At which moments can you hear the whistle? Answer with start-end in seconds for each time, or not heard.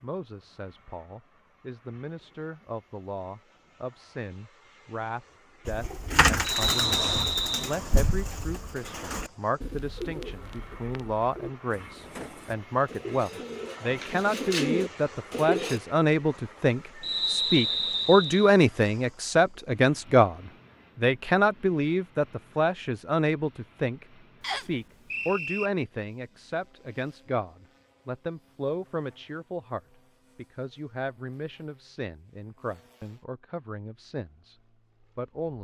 6.4-7.8, 17.0-18.5, 24.4-25.7.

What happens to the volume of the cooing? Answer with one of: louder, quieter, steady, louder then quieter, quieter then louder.
quieter then louder.